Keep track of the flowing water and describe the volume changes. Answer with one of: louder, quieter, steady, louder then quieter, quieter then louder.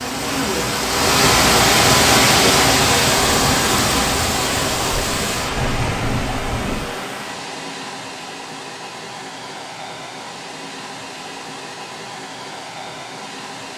quieter.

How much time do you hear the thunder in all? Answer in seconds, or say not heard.
4 s.